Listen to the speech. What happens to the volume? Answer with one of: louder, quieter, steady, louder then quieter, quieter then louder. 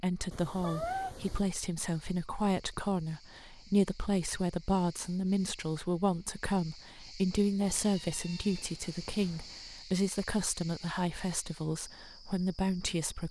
steady.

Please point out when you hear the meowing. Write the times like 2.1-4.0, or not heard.
0.3-1.4, 7.6-9.6.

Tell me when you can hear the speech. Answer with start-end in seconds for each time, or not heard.
0.0-13.2.